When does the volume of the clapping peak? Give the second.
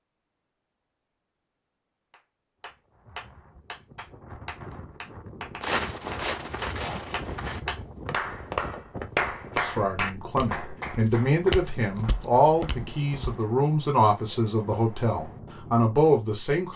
9 s.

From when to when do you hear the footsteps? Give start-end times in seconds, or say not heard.
5.6-13.3.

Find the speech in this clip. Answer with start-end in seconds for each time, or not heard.
9.6-16.7.